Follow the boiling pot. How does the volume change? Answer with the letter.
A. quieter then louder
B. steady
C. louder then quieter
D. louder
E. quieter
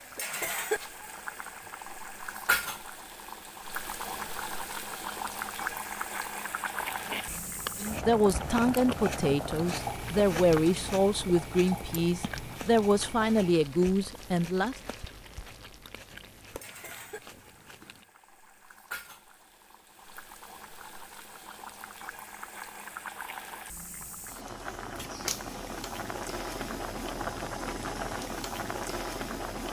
A.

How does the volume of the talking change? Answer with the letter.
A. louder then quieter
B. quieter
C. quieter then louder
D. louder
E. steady
E.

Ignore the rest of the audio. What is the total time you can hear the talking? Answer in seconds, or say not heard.
7 s.